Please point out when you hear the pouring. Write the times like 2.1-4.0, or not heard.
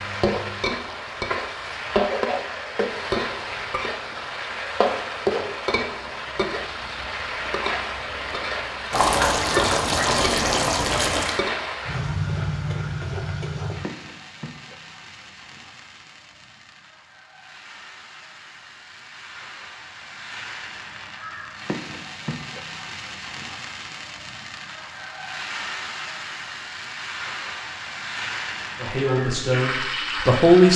8.9-11.4.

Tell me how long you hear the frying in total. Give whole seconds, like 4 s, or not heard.
31 s.